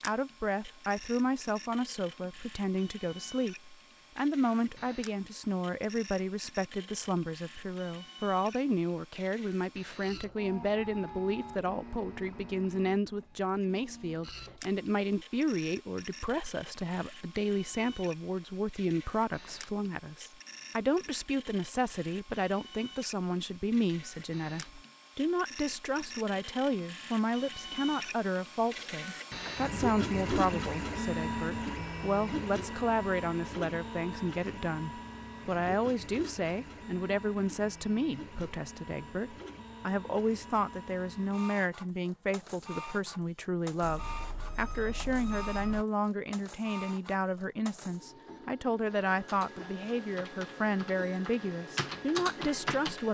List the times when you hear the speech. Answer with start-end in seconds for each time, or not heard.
0.0-53.0.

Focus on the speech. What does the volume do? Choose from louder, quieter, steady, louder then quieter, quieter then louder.
steady.